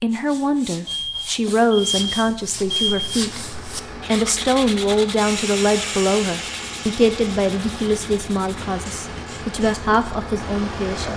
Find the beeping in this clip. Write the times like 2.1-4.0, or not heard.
0.8-3.1.